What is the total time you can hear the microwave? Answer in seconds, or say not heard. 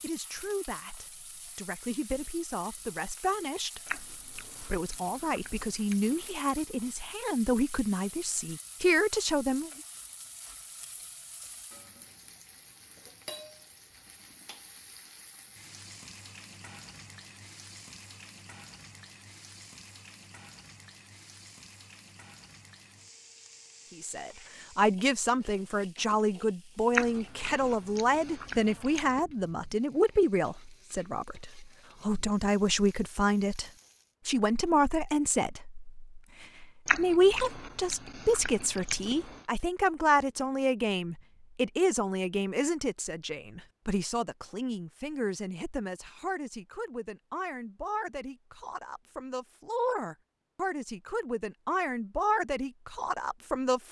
not heard.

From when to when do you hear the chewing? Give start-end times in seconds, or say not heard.
3.9-6.3, 26.9-29.2, 36.9-39.5.